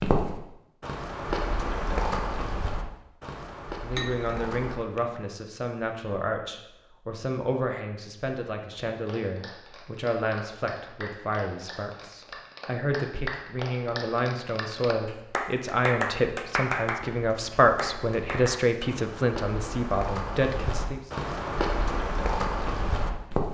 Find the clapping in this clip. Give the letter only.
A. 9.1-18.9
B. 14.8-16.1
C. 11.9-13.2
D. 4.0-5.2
A.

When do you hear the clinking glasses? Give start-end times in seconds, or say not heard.
4.0-5.2.